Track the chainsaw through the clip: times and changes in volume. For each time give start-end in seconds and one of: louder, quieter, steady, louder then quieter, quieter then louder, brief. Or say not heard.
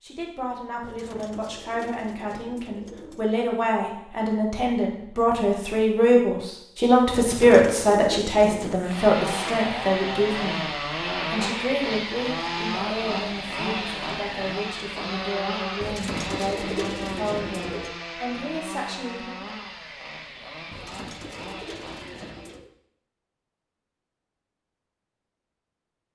8.7-22.6 quieter.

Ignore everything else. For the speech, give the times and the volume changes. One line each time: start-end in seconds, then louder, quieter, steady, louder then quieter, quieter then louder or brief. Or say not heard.
0.0-19.4 louder then quieter.